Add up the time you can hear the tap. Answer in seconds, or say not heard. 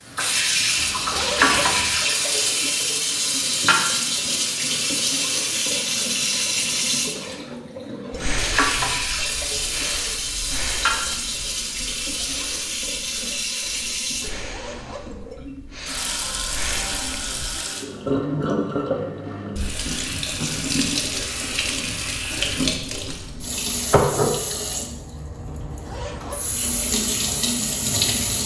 28 s.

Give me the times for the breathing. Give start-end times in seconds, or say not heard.
8.1-17.6.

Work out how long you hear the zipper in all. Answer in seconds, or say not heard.
3 s.